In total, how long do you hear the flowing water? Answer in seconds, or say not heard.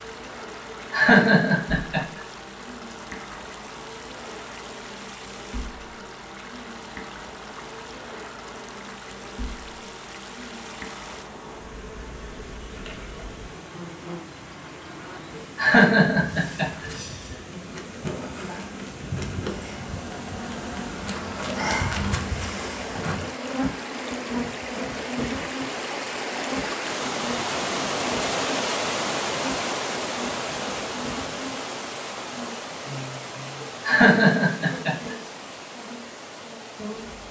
37 s.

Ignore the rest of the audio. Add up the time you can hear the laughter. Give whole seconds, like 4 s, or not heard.
4 s.